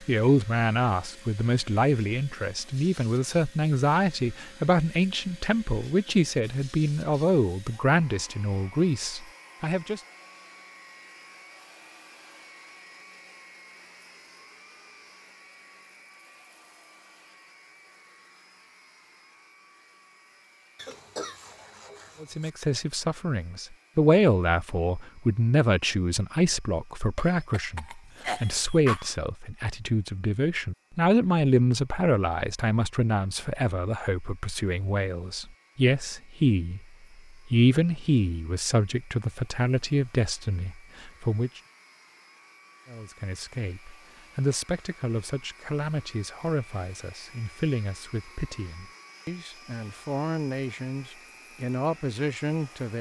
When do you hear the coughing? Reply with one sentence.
The coughing can be heard from 20.8 to 22.5 s and from 27.1 to 29.1 s.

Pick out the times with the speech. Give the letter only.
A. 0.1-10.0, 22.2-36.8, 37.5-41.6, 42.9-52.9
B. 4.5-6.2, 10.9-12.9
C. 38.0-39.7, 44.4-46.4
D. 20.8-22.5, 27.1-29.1
A.